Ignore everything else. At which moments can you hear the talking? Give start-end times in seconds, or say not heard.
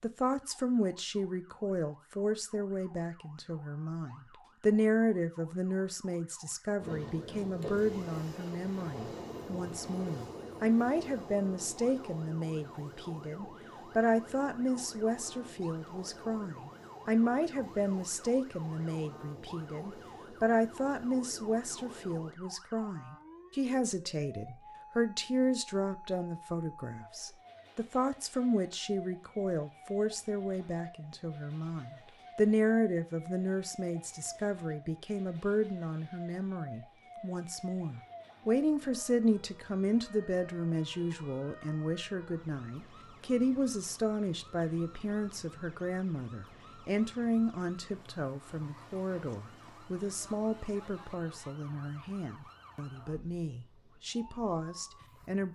0.0-55.5.